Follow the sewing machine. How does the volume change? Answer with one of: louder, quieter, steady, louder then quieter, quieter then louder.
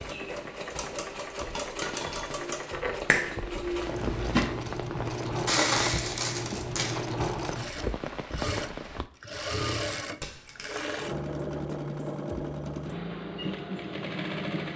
steady.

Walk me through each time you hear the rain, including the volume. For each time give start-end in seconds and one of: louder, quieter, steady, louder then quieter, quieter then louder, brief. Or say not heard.
0.0-9.1 louder.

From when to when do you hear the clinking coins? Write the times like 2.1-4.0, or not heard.
1.6-2.2, 5.5-7.0, 10.2-10.9.